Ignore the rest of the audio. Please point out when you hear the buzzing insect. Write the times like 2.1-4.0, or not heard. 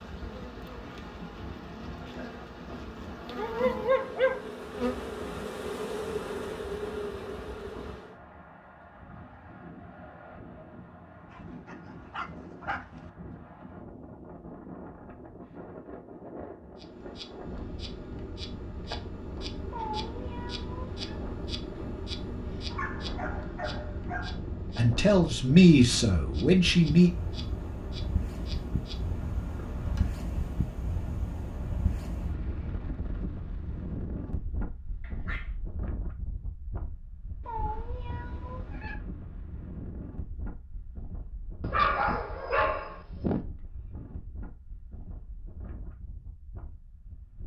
0.0-8.2, 16.8-30.2.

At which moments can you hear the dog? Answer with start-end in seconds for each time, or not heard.
3.4-4.5, 11.3-13.1, 22.7-24.4, 35.0-35.5, 41.6-43.4.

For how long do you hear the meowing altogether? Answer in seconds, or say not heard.
3 s.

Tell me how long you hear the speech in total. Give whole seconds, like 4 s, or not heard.
2 s.